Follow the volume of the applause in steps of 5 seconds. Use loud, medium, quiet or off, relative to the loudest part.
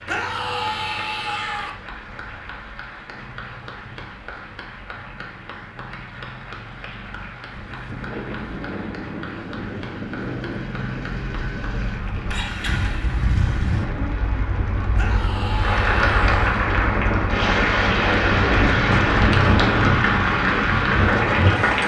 quiet, quiet, quiet, loud, loud.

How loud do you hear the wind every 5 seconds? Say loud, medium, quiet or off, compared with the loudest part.
off, medium, medium, loud, loud.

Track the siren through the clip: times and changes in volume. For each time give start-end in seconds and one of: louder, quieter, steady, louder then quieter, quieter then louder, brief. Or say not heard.
not heard.